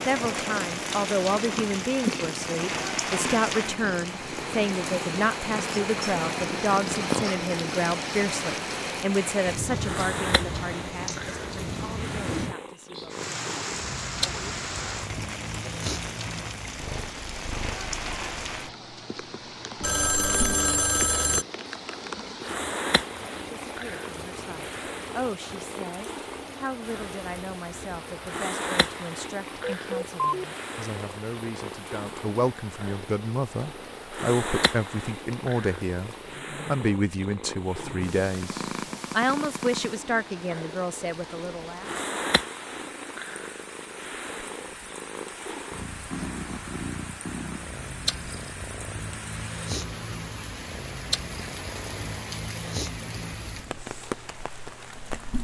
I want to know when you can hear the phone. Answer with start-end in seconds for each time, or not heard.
19.8-21.4, 29.6-30.4.